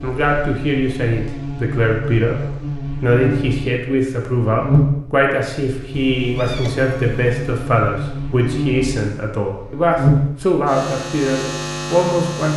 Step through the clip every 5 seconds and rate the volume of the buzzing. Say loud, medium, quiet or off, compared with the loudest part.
loud, medium, loud.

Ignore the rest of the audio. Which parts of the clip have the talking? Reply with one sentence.
The talking can be heard from 0.0 to 12.5 s.